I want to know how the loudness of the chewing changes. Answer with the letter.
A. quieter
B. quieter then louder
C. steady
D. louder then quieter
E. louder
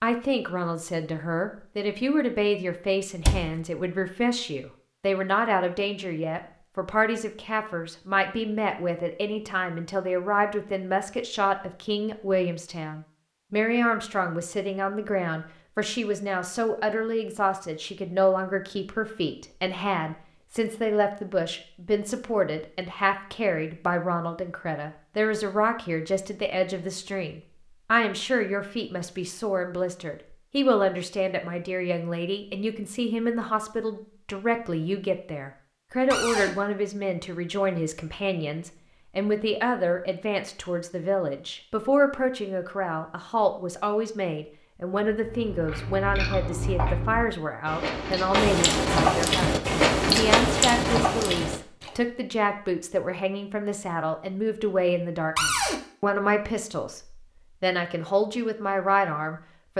E.